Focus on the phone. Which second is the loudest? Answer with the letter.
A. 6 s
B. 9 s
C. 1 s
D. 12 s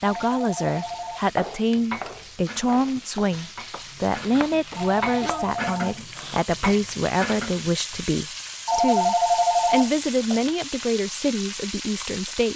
B.